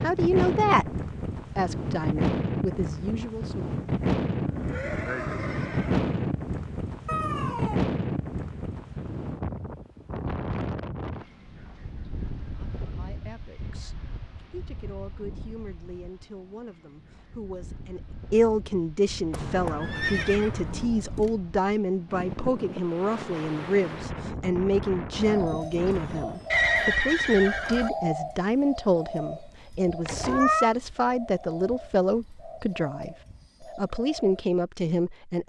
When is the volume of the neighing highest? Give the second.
27 s.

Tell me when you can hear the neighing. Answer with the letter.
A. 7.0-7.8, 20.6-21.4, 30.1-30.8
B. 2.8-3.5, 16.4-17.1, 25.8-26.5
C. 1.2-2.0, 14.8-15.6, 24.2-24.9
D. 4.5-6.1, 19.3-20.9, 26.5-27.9
D.